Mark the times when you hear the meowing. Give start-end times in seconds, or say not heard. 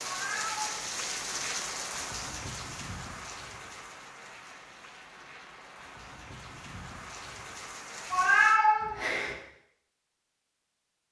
0.0-1.2, 8.1-9.3.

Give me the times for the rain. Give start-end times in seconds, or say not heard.
0.0-8.6.